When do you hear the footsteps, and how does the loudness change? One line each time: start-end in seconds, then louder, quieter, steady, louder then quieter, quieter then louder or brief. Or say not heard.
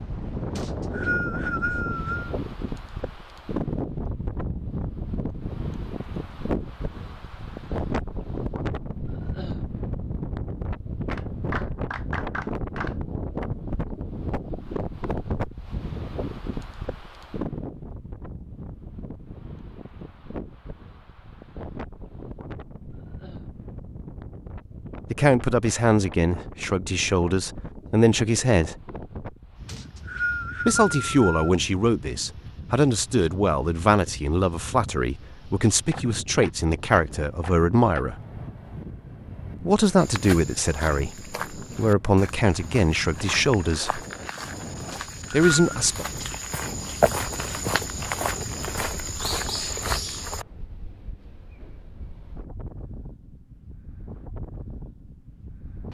40.0-50.5 louder.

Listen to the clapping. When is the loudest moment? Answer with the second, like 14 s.
12 s.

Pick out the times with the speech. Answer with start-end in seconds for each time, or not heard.
25.1-28.8, 30.6-38.1, 39.6-44.0, 45.3-46.0.